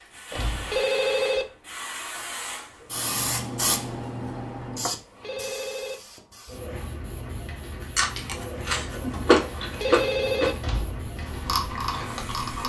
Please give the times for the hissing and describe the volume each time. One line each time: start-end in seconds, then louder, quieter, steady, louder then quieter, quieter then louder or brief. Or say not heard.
0.0-12.6 louder then quieter.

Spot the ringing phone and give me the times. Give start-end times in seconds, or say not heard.
0.3-1.4, 4.8-6.0, 9.6-10.6.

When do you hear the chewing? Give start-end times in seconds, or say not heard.
8.0-12.6.